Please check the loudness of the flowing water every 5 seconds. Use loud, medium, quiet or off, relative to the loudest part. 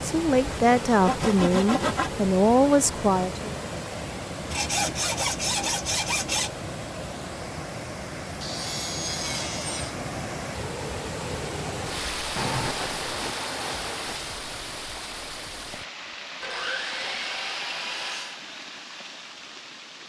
loud, loud, loud, medium.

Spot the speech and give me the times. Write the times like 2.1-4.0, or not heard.
0.0-3.5.